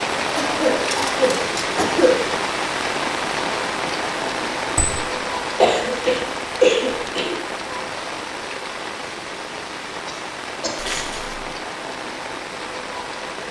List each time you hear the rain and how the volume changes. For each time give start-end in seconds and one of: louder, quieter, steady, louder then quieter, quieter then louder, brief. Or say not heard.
0.0-13.4 quieter.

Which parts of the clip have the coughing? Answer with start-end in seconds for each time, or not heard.
0.3-2.4, 5.6-7.3, 10.1-10.9.